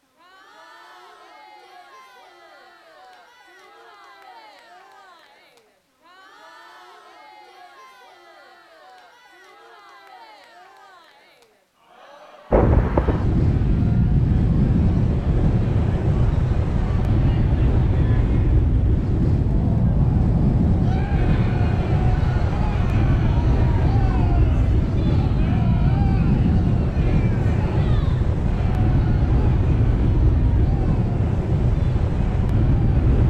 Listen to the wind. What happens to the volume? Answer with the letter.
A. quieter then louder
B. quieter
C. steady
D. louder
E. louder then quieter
C.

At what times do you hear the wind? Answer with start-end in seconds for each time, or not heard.
12.5-33.2.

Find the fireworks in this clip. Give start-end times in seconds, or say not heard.
not heard.